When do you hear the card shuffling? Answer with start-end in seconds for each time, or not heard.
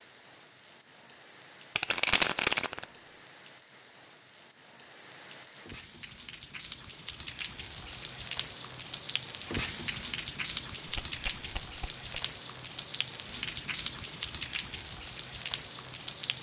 1.8-2.9, 10.8-12.1.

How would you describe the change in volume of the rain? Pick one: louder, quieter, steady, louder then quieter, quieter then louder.
louder.